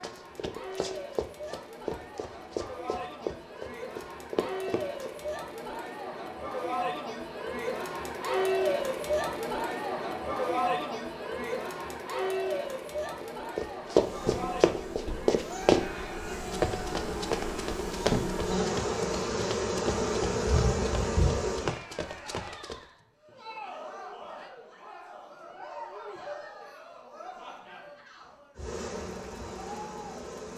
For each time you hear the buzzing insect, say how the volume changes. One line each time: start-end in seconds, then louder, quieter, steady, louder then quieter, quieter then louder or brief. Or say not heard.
13.9-21.8 louder
28.6-30.5 brief.